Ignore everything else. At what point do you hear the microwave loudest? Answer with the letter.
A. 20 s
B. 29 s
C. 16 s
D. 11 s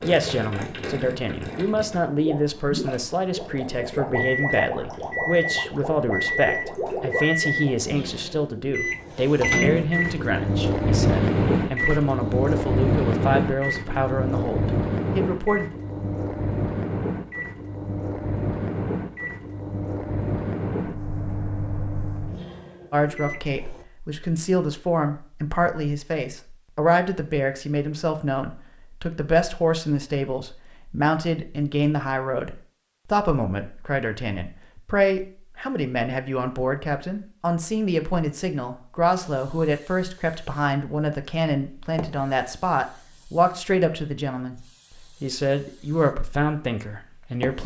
D.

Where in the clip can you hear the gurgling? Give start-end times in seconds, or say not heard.
0.0-8.0.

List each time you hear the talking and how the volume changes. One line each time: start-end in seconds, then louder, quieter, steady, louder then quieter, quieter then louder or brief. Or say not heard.
0.0-15.7 steady
22.9-47.6 steady.